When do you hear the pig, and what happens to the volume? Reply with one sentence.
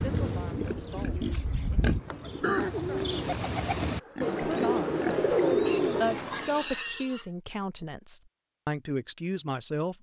The pig can be heard from 0.0 to 7.2 s, getting louder then quieter.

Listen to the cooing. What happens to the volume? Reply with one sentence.
The volume of the cooing goes up.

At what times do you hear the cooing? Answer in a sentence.
The cooing can be heard from 0.0 to 6.6 s.